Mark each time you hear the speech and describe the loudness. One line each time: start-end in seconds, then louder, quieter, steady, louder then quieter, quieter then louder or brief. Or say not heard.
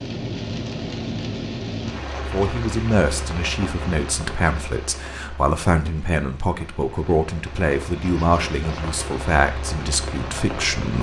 2.3-10.9 steady.